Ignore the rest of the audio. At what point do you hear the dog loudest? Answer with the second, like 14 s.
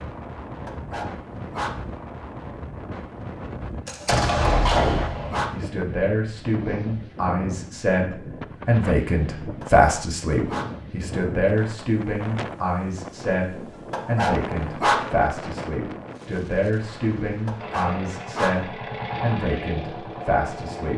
15 s.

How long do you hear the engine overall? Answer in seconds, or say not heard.
3 s.